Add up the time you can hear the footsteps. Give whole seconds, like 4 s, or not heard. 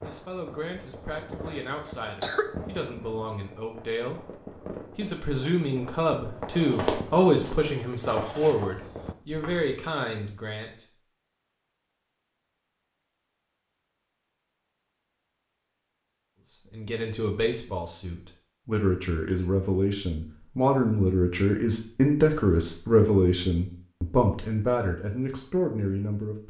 3 s.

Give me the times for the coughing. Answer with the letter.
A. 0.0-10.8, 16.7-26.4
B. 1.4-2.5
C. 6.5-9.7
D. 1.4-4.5
B.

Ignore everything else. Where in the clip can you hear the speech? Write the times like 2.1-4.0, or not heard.
0.0-10.8, 16.7-26.4.